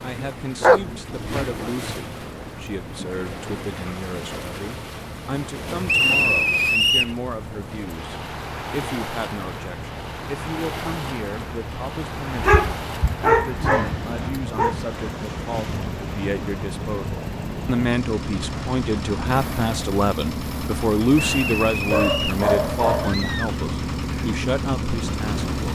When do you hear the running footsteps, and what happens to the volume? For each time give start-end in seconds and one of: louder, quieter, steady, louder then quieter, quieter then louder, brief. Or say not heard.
not heard.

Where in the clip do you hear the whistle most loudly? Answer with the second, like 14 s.
6 s.